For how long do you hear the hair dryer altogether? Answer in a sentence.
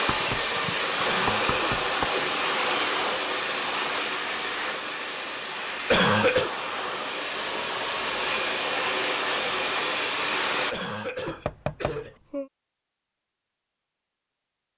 You can hear the hair dryer for 11 seconds altogether.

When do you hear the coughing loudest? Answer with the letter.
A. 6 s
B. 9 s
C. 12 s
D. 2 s
A.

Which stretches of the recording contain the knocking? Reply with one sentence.
The knocking can be heard from 0.1 to 2.0 s and from 11.2 to 12.5 s.